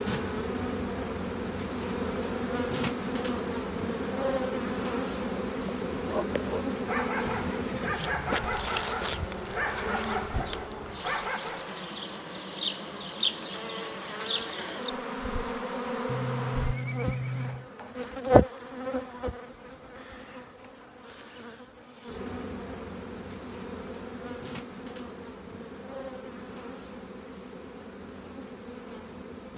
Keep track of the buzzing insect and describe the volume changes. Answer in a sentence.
The loudness of the buzzing insect goes down.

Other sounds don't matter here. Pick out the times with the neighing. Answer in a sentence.
You can hear the neighing from 7.2 to 9.2 s and from 16.1 to 17.7 s.